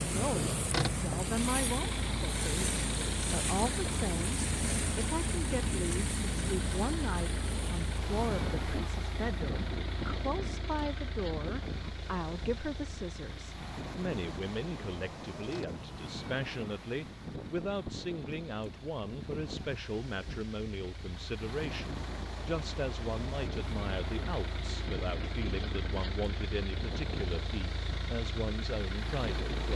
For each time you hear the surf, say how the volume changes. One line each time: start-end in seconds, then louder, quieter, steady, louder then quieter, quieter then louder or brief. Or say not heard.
0.0-29.7 quieter.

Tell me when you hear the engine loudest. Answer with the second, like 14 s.
1 s.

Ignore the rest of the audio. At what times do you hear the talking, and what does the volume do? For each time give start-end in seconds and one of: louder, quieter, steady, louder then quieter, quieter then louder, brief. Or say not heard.
0.0-29.7 steady.